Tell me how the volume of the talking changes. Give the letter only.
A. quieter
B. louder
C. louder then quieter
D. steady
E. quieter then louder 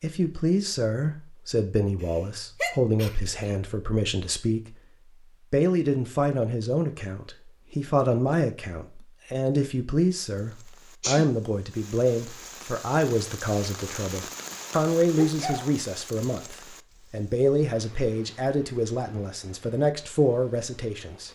D.